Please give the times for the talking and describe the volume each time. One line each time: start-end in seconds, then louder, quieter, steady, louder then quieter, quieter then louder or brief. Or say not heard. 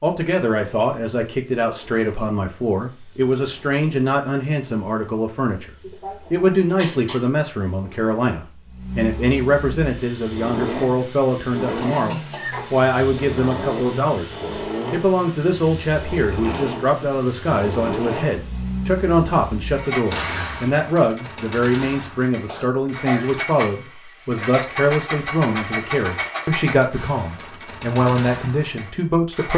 0.0-5.7 steady
6.3-29.5 steady.